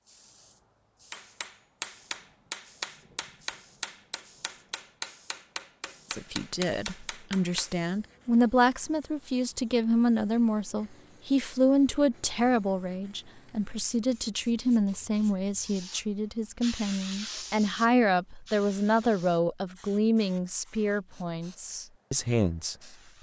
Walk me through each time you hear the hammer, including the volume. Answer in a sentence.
The hammer can be heard from 1.1 to 7.8 s, getting quieter then louder.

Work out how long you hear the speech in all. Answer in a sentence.
The speech can be heard for 17 seconds in total.